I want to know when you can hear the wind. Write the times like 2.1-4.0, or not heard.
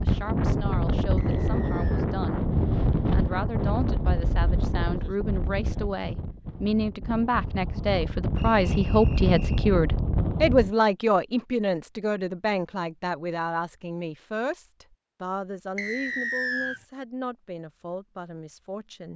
0.0-10.7.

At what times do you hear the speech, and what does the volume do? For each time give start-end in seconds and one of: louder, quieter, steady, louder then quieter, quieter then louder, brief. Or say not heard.
0.0-2.5 brief
3.1-19.1 louder then quieter.